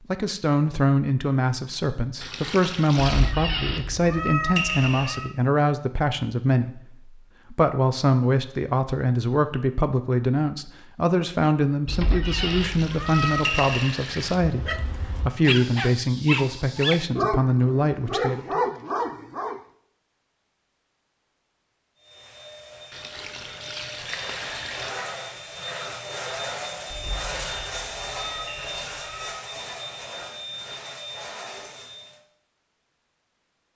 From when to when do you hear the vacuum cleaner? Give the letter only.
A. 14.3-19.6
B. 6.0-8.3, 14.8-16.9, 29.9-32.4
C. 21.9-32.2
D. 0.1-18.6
C.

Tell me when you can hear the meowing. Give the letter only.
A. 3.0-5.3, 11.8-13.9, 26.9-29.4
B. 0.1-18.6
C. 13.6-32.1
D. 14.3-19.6
A.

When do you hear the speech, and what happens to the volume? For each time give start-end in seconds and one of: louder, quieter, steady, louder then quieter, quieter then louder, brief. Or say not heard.
0.1-18.6 steady.